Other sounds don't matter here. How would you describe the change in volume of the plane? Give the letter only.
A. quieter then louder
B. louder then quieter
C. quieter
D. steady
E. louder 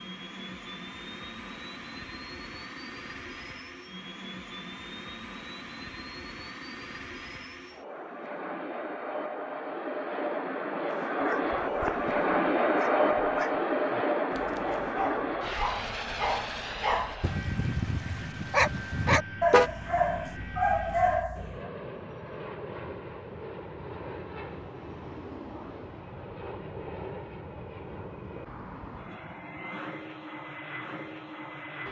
B.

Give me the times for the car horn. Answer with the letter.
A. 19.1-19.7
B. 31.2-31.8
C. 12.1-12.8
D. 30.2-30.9
A.